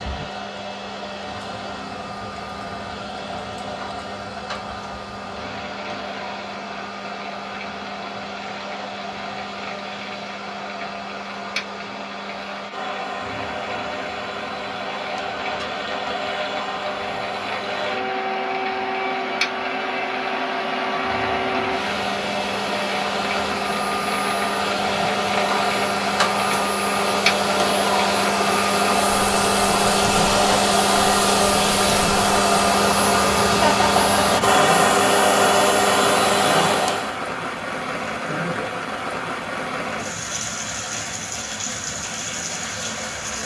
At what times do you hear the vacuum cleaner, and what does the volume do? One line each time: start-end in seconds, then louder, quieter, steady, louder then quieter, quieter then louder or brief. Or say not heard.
0.0-37.1 louder.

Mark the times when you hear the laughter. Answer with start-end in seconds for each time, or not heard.
33.6-34.6.